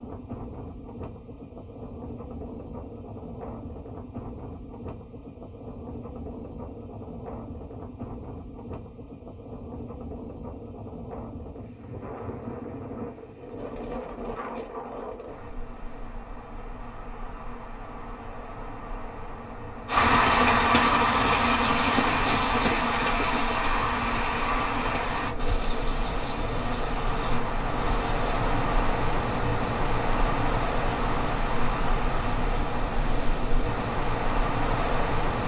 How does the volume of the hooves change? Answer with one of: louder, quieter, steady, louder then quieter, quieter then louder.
quieter.